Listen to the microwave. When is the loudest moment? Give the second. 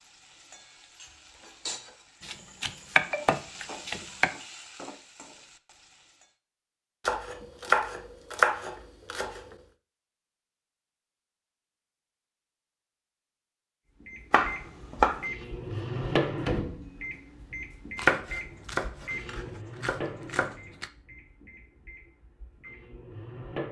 16 s.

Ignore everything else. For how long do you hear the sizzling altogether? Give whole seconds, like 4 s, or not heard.
6 s.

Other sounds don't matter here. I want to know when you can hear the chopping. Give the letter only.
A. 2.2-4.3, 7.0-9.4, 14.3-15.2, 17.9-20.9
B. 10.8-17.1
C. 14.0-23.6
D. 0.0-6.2
A.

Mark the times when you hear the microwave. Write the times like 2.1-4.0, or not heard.
14.0-23.6.